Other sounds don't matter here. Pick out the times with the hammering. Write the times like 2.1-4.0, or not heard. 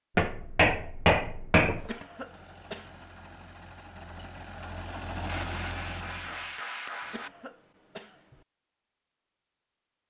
0.1-1.9, 5.2-7.3.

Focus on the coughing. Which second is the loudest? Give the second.
2 s.